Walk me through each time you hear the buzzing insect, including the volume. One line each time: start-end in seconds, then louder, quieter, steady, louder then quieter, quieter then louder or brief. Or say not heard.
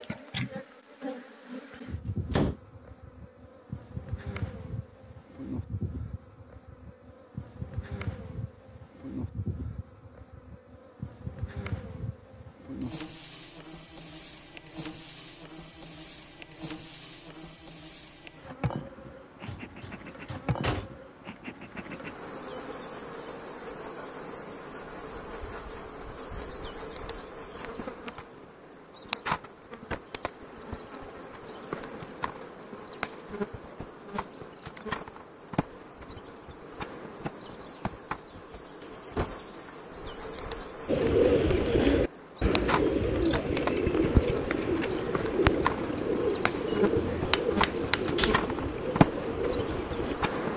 0.0-50.5 louder.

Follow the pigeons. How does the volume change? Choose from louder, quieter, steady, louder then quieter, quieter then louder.
quieter.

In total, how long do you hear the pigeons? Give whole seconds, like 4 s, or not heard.
9 s.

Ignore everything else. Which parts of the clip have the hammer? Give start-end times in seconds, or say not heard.
47.0-48.4.